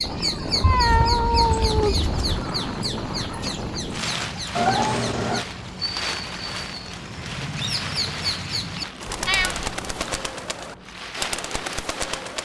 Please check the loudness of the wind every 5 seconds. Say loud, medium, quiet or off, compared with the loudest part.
loud, loud, medium.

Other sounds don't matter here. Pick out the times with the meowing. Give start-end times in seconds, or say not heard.
0.6-2.2, 4.5-5.5, 9.1-10.2.